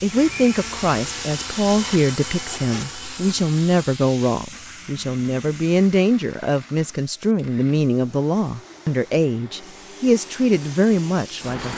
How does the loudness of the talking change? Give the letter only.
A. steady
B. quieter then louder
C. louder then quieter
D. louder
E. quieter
A.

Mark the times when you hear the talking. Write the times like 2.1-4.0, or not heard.
0.0-11.7.